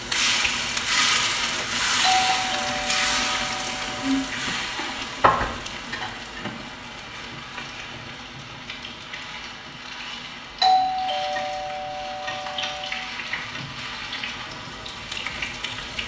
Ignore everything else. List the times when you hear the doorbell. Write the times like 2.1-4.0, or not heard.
2.0-4.3, 10.6-12.9.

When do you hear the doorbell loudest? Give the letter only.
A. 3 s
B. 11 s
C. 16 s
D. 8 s
B.